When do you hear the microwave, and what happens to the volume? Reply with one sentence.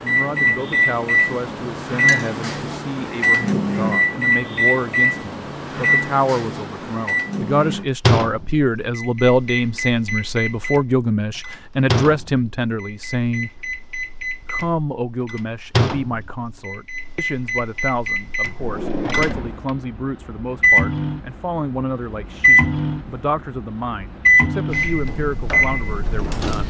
You can hear the microwave from 0.0 to 26.6 s, getting quieter then louder.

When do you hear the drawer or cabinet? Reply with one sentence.
The drawer or cabinet can be heard from 18.6 to 19.8 s.